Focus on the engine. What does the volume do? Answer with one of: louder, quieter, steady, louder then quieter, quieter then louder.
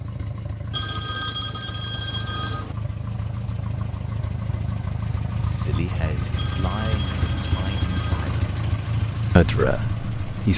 louder.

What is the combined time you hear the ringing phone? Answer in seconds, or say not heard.
4 s.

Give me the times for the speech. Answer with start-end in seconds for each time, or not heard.
5.3-8.5, 9.3-10.5.